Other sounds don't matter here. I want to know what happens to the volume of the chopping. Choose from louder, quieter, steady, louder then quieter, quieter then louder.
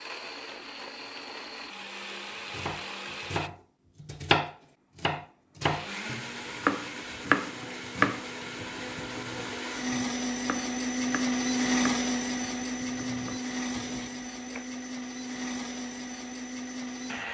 quieter.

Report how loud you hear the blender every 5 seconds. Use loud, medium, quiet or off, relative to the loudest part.
medium, medium, loud, medium.